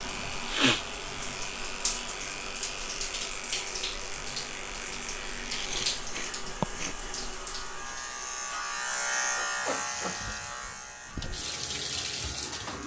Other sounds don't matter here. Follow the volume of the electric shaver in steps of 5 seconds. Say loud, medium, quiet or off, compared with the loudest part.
medium, loud, medium.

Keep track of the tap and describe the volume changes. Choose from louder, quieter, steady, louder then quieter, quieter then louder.
quieter then louder.